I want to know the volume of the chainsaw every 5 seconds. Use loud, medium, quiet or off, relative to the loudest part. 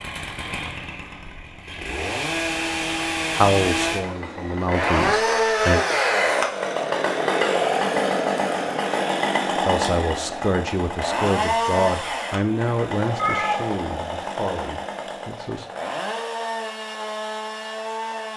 medium, loud, medium, medium.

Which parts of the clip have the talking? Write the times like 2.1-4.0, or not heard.
3.4-5.8, 9.6-15.7.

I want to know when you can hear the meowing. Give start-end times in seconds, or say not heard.
13.2-13.8.